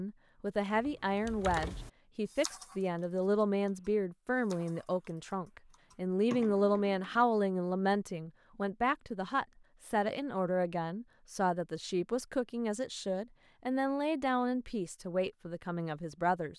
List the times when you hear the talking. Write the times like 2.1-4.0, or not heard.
0.0-16.5.